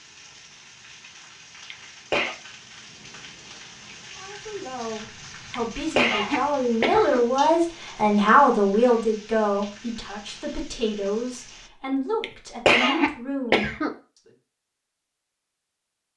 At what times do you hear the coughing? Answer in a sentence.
You can hear the coughing from 1.7 to 2.4 s, from 5.5 to 7.2 s and from 12.2 to 13.9 s.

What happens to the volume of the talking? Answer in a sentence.
The volume of the talking goes up, then down.